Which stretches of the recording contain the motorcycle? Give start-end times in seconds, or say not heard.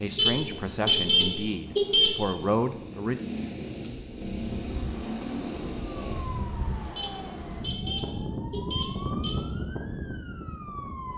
0.0-6.5.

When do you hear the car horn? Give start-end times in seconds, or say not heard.
0.1-2.3, 7.0-9.4.